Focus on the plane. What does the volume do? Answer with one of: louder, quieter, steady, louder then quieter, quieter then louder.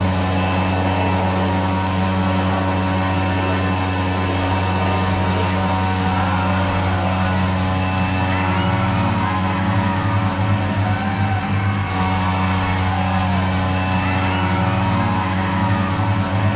steady.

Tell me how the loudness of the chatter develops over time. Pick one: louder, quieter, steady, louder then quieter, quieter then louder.
steady.